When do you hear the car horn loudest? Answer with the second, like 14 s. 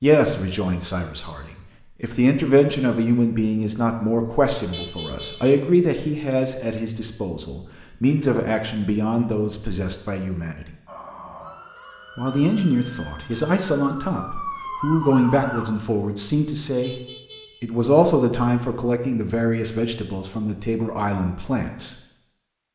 5 s.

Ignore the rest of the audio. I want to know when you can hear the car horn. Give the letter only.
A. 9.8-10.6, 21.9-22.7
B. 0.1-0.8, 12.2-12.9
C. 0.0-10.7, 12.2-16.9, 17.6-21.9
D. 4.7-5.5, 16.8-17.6
D.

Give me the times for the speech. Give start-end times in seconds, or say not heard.
0.0-10.7, 12.2-16.9, 17.6-21.9.